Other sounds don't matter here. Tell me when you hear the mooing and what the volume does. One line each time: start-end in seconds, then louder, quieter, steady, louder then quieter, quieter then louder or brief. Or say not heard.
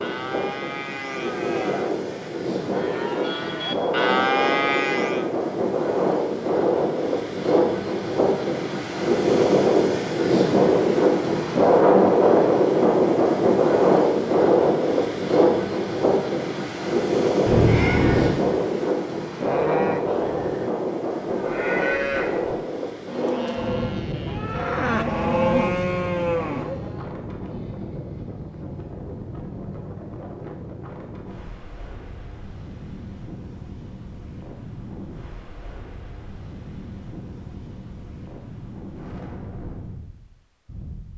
0.0-5.3 louder
19.3-27.1 louder.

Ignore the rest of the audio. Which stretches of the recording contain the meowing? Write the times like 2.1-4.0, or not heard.
17.4-18.4.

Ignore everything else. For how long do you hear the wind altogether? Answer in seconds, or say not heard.
41 s.